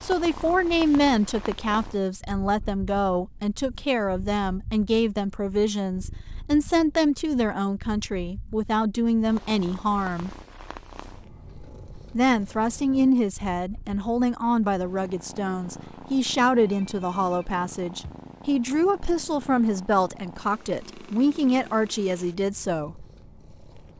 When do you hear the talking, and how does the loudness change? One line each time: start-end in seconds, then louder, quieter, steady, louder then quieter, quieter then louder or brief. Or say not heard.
0.0-10.3 steady
12.2-23.1 steady.